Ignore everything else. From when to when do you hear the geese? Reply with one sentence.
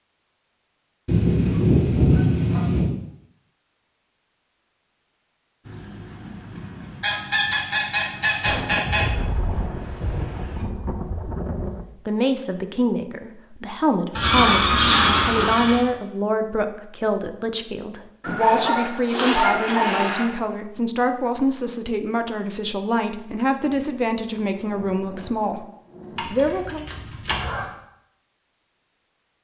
The geese can be heard from 1.1 to 2.9 s, from 7.0 to 9.1 s, from 14.2 to 15.8 s, from 18.2 to 20.2 s and from 26.1 to 27.6 s.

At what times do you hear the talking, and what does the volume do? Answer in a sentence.
You can hear the talking from 12.1 to 25.6 s, at a steady volume; and briefly from 26.2 to 26.9 s.